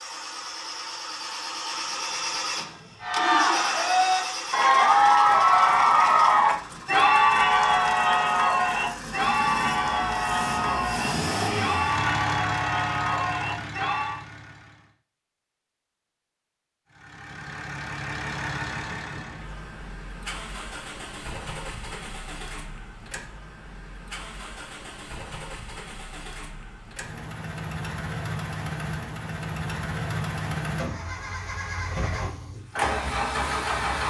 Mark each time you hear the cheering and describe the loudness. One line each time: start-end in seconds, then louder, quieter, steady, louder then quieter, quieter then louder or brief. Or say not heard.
3.0-14.2 quieter.